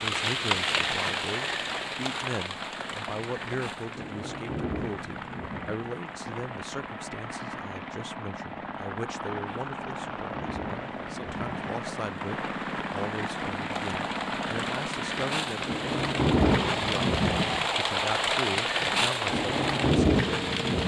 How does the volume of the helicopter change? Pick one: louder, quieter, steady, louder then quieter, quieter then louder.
louder.